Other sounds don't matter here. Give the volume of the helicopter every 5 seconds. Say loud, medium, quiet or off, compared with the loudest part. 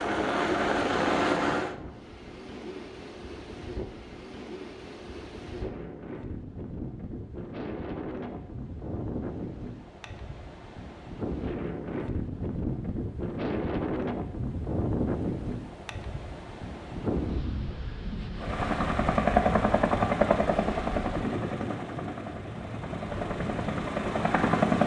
loud, off, off, loud, loud.